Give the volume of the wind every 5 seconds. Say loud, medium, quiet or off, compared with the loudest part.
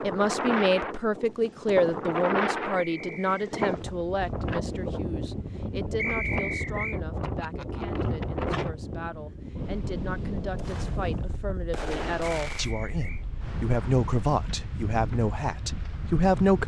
loud, loud, medium, medium.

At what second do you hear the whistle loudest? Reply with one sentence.
The volume of the whistle peaks at 6 seconds.